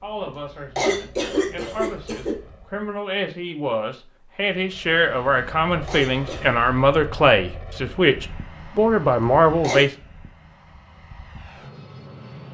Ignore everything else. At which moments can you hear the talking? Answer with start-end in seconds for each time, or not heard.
0.0-9.9.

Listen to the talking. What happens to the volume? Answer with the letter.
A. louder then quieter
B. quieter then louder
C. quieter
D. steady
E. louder
E.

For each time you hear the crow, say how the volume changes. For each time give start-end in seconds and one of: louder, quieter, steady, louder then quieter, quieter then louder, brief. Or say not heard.
not heard.